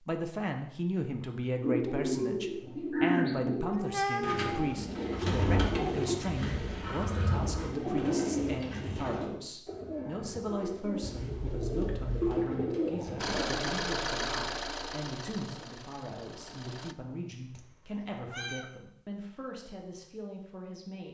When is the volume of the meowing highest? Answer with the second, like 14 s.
4 s.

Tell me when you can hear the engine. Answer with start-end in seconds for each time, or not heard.
13.2-16.9.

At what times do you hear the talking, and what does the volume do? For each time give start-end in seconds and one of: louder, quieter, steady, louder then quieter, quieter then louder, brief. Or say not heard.
0.1-21.0 quieter.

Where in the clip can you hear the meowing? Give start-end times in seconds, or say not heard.
3.6-4.8, 11.0-12.4, 17.6-18.6.